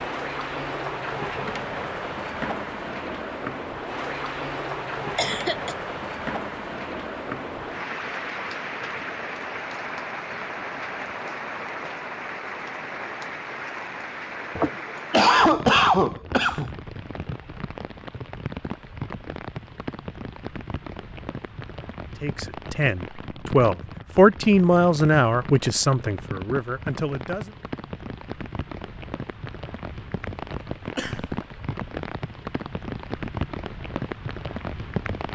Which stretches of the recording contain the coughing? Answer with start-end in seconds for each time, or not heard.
5.2-5.8, 14.6-16.7, 30.9-31.4.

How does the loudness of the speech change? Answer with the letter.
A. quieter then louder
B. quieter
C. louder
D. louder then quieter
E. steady
D.